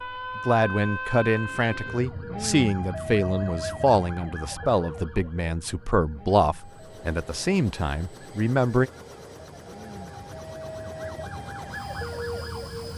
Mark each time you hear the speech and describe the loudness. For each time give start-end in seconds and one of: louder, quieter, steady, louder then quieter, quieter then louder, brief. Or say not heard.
0.3-8.9 steady.